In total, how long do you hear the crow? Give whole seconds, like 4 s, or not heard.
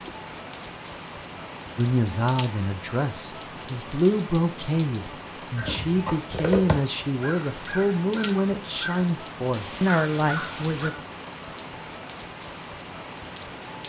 5 s.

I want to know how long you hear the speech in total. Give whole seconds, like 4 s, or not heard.
9 s.